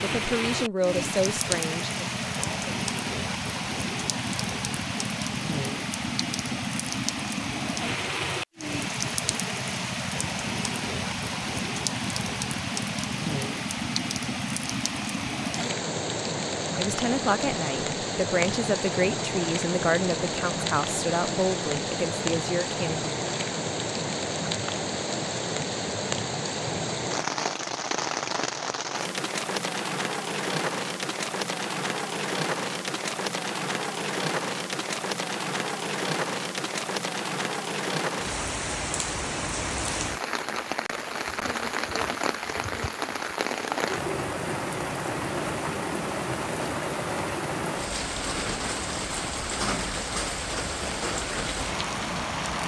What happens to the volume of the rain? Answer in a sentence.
The loudness of the rain stays about the same.